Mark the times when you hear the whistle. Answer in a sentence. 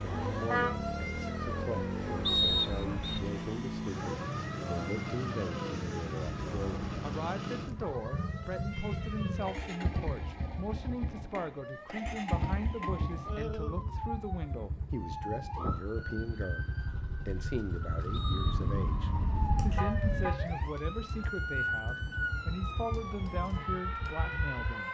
You can hear the whistle from 2.2 to 3.2 s and from 18.1 to 18.6 s.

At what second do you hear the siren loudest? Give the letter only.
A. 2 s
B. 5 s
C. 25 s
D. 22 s
D.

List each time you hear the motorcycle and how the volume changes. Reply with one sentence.
You can hear the motorcycle from 0.0 to 24.8 s, getting quieter.